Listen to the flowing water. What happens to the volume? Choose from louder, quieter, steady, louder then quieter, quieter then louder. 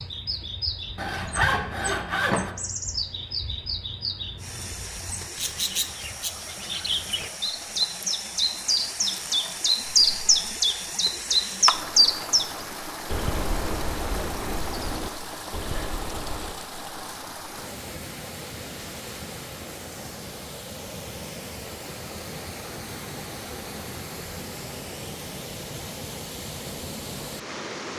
steady.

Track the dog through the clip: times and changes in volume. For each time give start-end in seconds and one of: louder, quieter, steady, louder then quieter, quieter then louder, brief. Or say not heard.
not heard.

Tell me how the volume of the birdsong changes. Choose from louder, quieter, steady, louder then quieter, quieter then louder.
louder then quieter.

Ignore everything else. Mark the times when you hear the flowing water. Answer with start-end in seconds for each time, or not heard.
4.3-27.9.